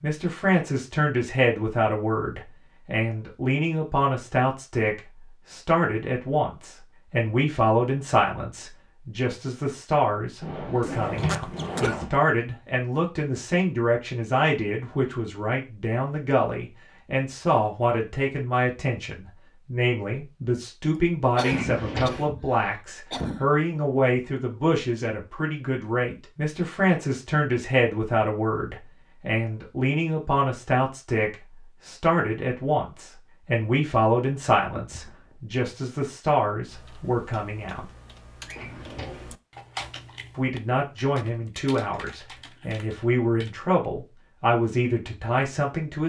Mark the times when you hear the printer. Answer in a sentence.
You can't hear the printer here.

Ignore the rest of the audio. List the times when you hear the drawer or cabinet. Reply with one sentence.
The drawer or cabinet can be heard from 10.4 to 12.1 s, from 21.4 to 22.3 s and from 38.5 to 39.3 s.